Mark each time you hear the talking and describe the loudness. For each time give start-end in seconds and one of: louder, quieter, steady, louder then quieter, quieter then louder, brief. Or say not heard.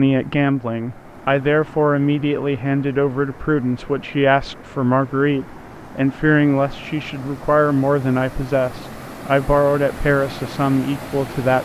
0.0-11.5 steady.